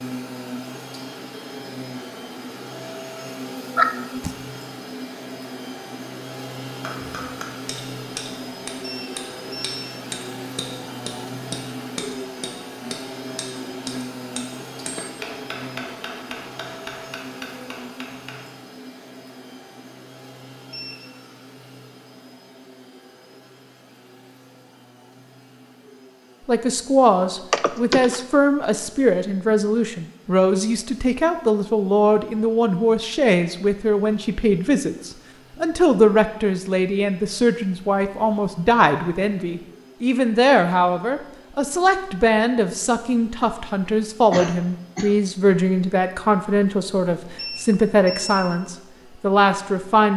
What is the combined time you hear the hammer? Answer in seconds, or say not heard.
12 s.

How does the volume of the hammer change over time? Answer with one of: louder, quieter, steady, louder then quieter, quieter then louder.
steady.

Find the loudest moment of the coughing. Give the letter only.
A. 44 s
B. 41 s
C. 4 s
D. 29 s
C.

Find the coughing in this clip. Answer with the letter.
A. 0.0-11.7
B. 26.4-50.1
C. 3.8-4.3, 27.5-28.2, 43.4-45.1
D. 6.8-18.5
C.